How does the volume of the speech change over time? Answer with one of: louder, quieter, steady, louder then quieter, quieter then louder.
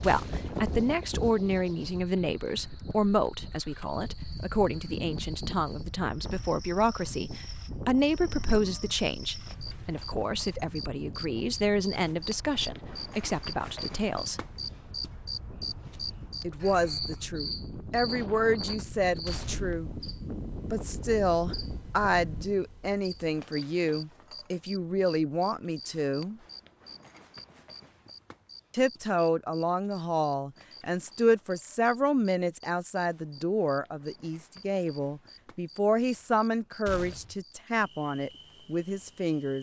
steady.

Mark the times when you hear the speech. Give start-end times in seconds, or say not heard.
0.0-14.4, 16.4-19.9, 20.7-26.4, 28.7-39.5.